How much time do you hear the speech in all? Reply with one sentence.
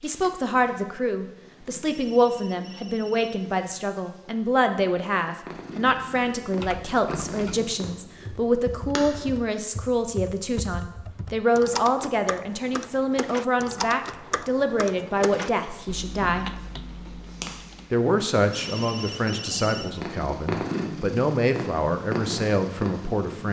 The speech can be heard for 22 seconds in total.